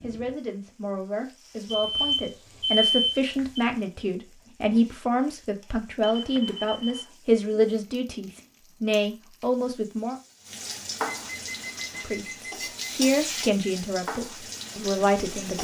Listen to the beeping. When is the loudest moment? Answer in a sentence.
The volume of the beeping peaks at 3 seconds.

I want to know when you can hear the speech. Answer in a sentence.
The speech can be heard from 0.0 to 10.2 s and from 12.0 to 15.5 s.